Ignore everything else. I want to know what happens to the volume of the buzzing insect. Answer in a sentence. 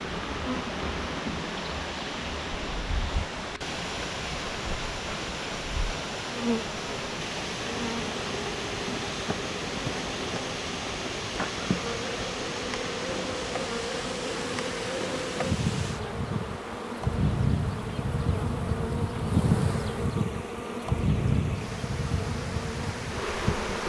The volume of the buzzing insect goes up.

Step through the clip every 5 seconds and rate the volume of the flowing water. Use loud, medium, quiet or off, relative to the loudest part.
loud, loud, loud, medium, medium.